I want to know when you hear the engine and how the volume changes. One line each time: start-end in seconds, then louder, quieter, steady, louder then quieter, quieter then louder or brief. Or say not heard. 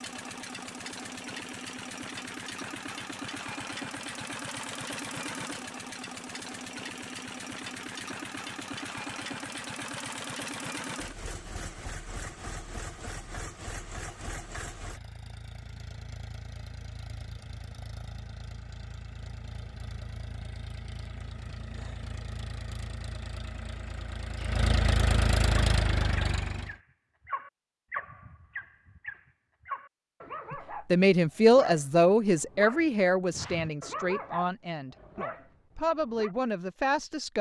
0.0-26.8 quieter then louder.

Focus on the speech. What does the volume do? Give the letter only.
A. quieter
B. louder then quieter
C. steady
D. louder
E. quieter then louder
E.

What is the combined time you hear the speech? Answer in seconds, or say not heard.
7 s.